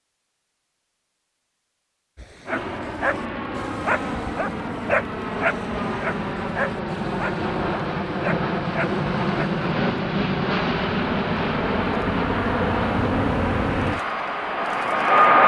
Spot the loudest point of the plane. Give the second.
15 s.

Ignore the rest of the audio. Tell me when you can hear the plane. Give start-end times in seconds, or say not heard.
2.5-15.4.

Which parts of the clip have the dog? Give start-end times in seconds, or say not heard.
2.1-9.7.